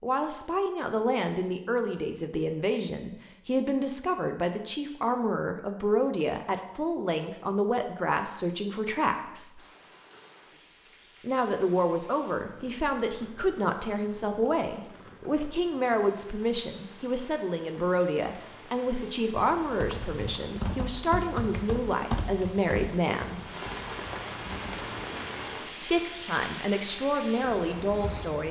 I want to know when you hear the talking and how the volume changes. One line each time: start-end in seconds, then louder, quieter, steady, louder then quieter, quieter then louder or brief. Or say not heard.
0.0-9.7 steady
11.2-23.4 steady
25.8-28.4 brief.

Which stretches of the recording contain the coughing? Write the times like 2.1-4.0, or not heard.
not heard.